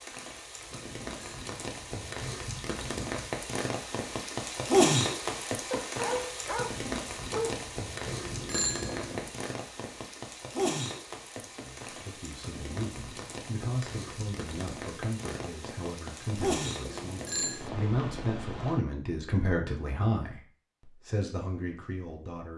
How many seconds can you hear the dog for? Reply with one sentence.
The dog can be heard for 2 seconds in total.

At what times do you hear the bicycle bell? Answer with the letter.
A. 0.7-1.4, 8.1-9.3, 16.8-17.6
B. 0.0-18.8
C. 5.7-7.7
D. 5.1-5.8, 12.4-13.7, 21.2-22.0
A.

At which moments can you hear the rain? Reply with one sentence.
The rain can be heard from 0.0 to 18.8 s.